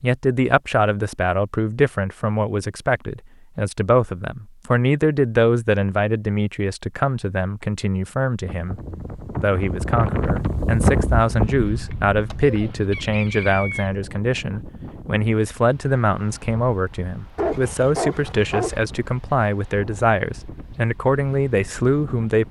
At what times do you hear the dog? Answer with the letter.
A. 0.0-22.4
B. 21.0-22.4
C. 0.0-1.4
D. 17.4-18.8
D.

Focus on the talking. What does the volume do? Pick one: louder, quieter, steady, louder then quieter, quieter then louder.
steady.